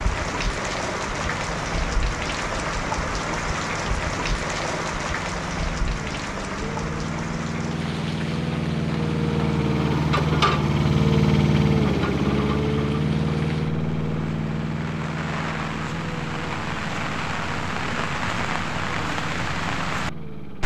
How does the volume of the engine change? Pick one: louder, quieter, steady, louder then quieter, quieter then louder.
louder then quieter.